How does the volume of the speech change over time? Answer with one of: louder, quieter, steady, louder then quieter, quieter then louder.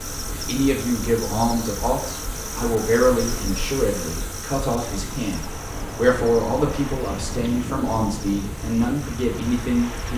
steady.